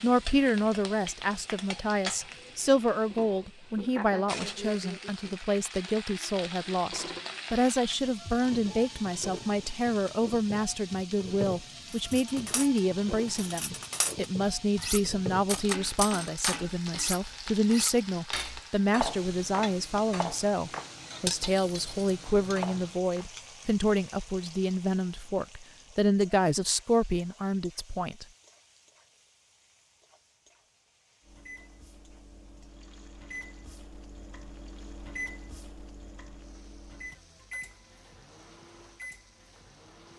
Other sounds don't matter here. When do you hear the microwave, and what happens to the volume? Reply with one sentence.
The microwave can be heard from 31.2 to 40.1 s, getting louder then quieter.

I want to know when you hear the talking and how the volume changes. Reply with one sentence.
You can hear the talking from 0.0 to 28.2 s, at a steady volume.